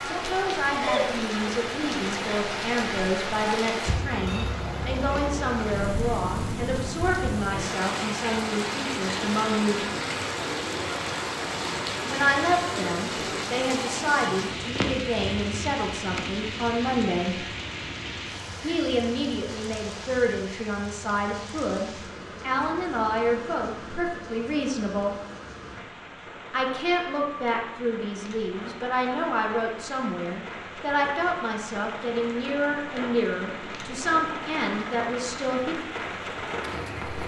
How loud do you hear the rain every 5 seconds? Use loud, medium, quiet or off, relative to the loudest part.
loud, loud, loud, medium, medium, medium, medium, loud.